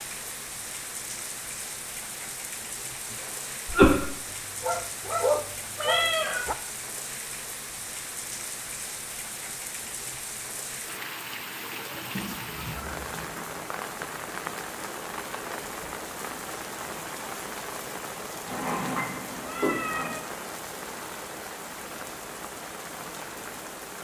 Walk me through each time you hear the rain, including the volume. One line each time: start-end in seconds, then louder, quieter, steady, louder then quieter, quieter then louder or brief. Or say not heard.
0.0-23.9 steady.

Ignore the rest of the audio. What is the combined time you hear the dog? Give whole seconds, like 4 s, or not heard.
2 s.